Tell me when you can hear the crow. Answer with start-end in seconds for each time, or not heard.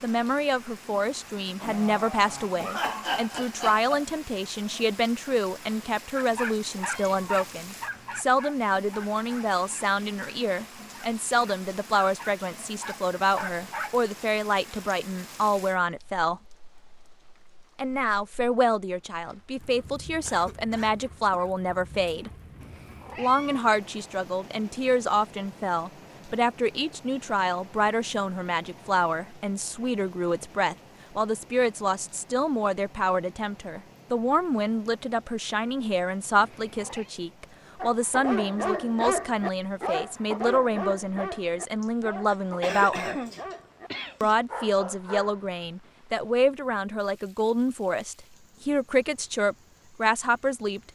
not heard.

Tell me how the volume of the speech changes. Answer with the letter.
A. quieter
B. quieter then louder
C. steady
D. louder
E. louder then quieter
C.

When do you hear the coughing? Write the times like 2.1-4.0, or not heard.
1.6-4.0, 20.2-22.4, 41.8-44.4.